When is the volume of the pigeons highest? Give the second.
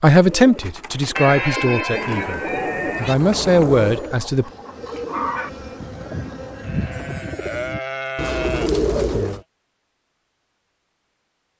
9 s.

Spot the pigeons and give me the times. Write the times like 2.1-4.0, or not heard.
0.2-9.4.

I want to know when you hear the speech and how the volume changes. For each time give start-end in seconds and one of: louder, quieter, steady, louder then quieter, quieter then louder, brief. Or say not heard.
0.0-4.5 quieter then louder.